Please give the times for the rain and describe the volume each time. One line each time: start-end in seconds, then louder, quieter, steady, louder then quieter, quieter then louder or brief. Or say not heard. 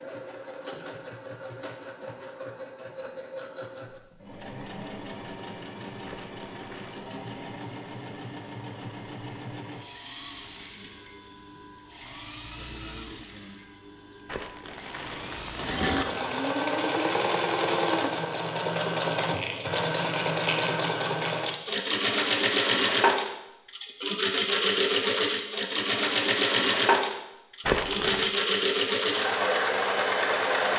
not heard.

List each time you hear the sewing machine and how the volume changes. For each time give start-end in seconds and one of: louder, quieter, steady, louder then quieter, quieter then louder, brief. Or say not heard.
0.0-30.7 louder.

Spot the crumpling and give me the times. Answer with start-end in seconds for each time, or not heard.
6.0-7.0, 14.2-15.8, 27.6-28.3.